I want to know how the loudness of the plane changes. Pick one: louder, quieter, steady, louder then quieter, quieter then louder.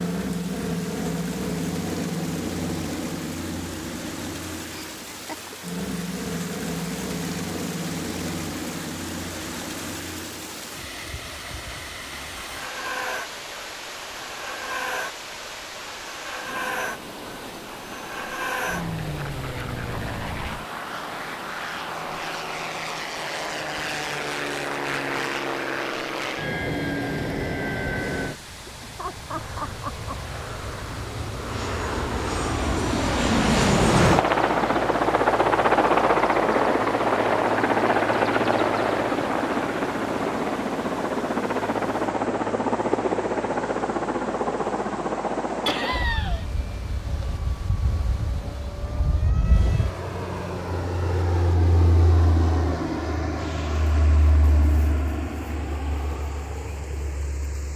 louder then quieter.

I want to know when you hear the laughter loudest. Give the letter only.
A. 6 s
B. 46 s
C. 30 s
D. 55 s
B.